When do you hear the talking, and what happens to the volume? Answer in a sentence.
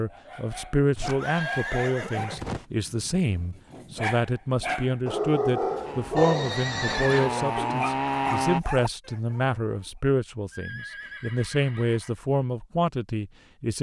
The talking can be heard from 0.0 to 13.7 s, at a steady volume.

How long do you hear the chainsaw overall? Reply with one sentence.
The chainsaw can be heard for 3 seconds in total.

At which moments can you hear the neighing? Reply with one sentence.
You can hear the neighing from 0.9 to 2.6 s, from 6.2 to 7.3 s and from 10.5 to 12.2 s.